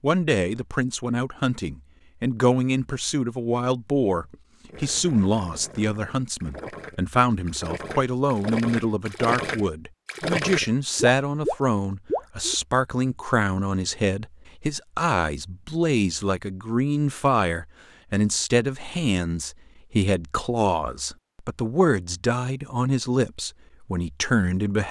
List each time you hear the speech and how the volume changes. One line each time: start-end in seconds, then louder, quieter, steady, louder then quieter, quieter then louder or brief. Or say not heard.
0.0-24.8 steady.